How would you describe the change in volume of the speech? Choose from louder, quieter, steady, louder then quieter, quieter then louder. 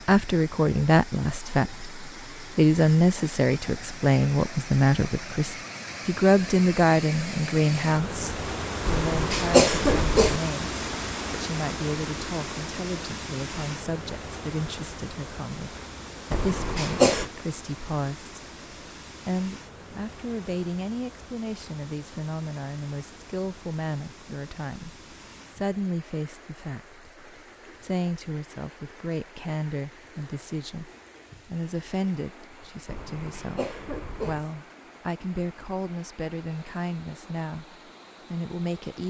quieter.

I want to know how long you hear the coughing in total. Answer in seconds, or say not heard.
4 s.